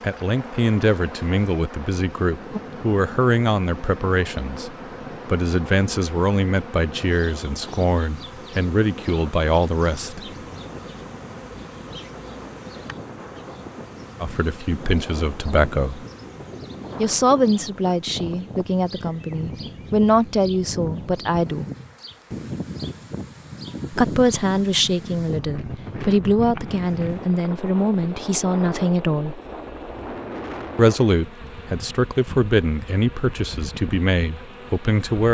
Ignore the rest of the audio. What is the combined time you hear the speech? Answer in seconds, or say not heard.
27 s.